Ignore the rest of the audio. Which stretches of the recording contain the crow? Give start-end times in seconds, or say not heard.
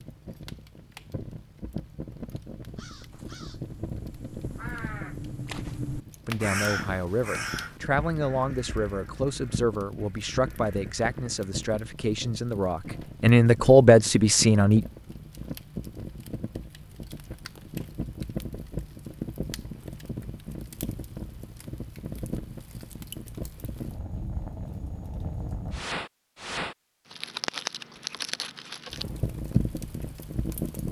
2.6-11.6.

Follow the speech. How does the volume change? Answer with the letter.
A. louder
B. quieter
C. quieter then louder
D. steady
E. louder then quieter
A.